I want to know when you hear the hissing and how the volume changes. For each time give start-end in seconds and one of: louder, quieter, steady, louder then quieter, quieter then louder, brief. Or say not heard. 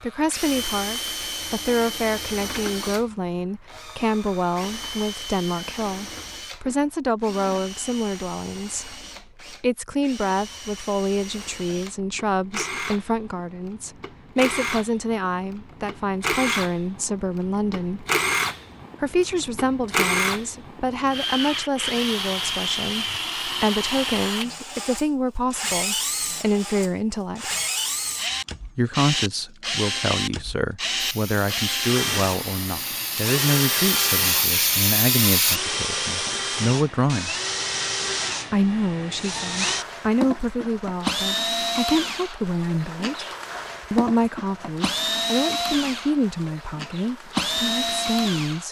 30.9-35.6 louder.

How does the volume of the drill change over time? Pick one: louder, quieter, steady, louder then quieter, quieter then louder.
louder.